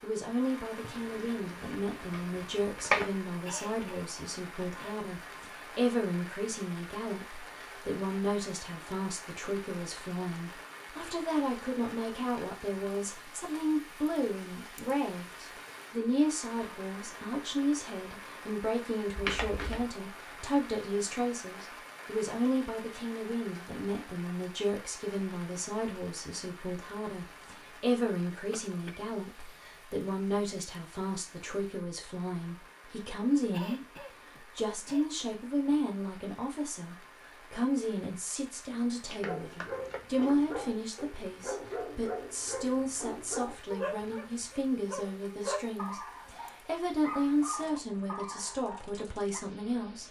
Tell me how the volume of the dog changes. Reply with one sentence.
The loudness of the dog stays about the same.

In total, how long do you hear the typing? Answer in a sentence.
You can't hear the typing here.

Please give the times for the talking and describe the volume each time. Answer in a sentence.
The talking can be heard from 0.0 to 50.0 s, at a steady volume.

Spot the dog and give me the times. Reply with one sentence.
You can hear the dog from 39.2 to 49.4 s.